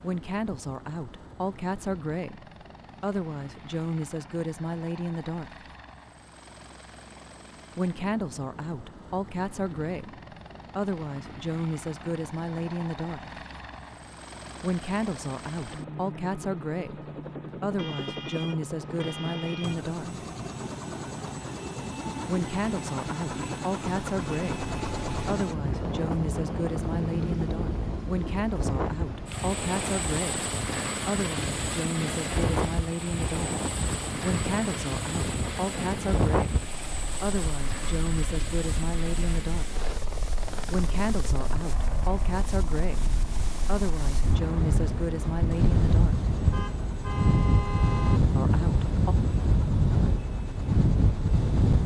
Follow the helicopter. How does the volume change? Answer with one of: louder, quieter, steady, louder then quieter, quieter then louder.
louder then quieter.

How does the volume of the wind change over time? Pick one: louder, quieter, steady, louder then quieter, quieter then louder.
louder.